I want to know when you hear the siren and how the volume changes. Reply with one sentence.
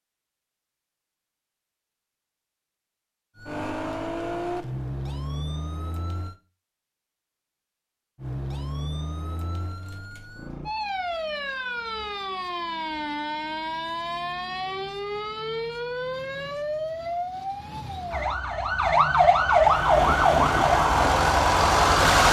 You can hear the siren briefly from 3.4 to 6.3 s; and from 8.2 to 22.2 s, getting louder.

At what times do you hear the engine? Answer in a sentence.
You can hear the engine from 19.4 to 22.2 s.